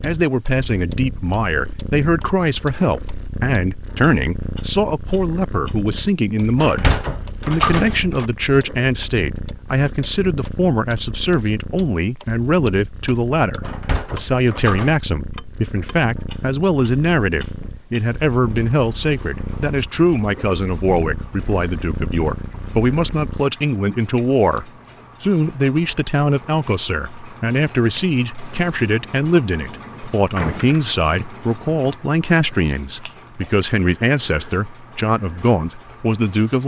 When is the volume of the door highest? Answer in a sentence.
The volume of the door peaks at 8 seconds.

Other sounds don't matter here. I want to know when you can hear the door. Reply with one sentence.
You can hear the door from 6.5 to 8.2 s, from 13.6 to 14.9 s and from 30.4 to 30.9 s.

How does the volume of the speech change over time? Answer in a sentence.
The loudness of the speech stays about the same.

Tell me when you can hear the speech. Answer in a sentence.
The speech can be heard from 0.0 to 36.6 s.